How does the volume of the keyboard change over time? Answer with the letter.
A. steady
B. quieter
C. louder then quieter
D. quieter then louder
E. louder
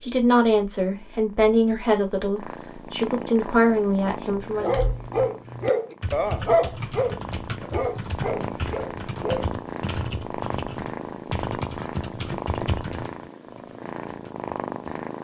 A.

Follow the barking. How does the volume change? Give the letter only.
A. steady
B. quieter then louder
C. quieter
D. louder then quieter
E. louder
C.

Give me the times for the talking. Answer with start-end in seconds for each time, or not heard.
0.0-4.8.